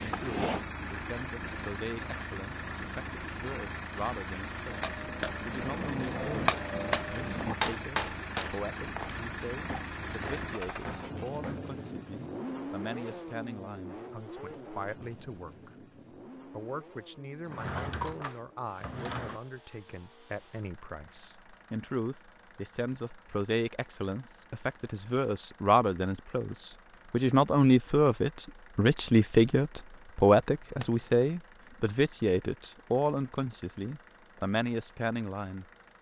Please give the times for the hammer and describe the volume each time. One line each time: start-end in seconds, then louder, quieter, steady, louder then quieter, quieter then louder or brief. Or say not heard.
4.6-11.7 louder then quieter.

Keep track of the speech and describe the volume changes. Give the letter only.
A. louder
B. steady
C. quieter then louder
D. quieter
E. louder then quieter
A.